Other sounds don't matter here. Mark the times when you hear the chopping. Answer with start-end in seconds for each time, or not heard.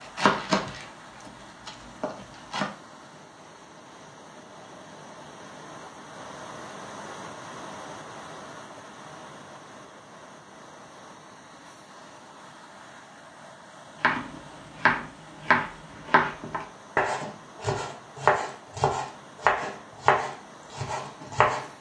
0.0-2.7, 14.0-21.7.